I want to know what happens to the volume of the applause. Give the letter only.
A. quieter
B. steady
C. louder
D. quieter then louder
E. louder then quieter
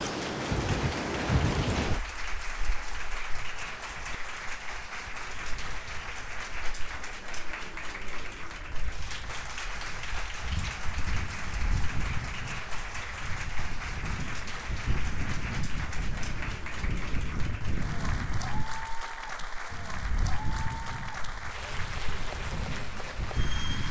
B.